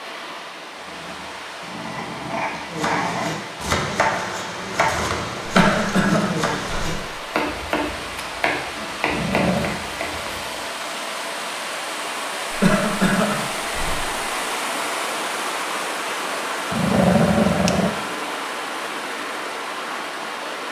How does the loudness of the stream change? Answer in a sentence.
The volume of the stream goes up.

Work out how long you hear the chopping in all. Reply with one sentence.
You can hear the chopping for 8 seconds altogether.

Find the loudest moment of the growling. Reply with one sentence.
The volume of the growling peaks at 17 seconds.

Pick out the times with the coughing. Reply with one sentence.
The coughing can be heard from 5.5 to 7.0 s and from 12.5 to 14.1 s.